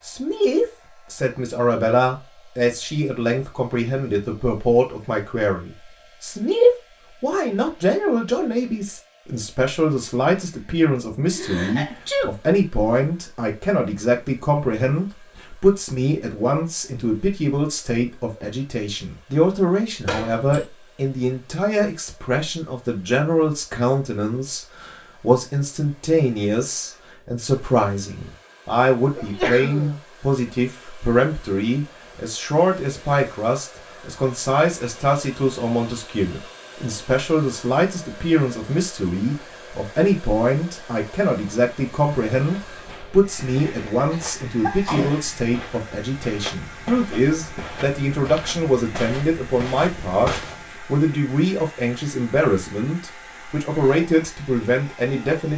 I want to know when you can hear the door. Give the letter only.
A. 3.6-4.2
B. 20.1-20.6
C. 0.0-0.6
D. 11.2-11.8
B.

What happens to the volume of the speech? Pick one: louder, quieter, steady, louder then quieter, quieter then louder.
steady.